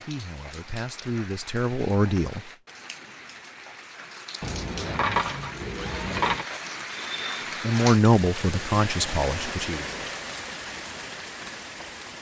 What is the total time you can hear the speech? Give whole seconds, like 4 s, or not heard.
5 s.